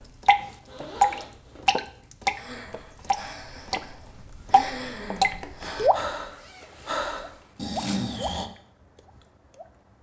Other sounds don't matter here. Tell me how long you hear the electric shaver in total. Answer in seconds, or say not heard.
not heard.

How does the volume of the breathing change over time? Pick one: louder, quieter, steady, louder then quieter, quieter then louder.
louder.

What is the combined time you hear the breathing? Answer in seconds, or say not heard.
6 s.